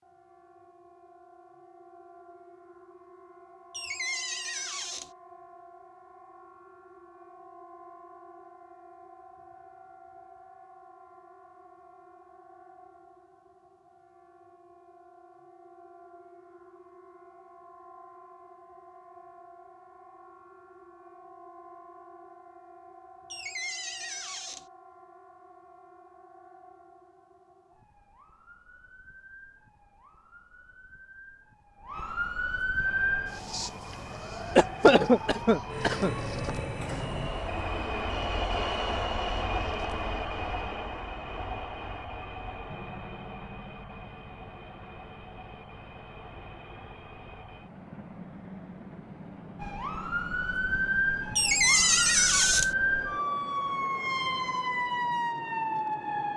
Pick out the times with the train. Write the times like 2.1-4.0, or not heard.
32.8-56.3.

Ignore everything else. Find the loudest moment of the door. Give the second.
52 s.